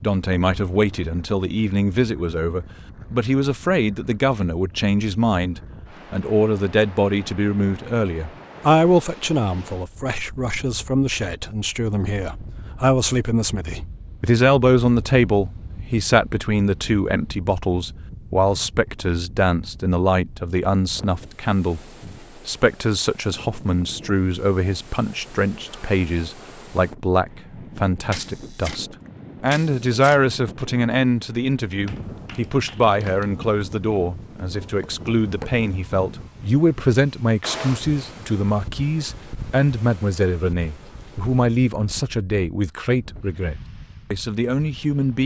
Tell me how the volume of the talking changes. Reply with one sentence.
The volume of the talking stays about the same.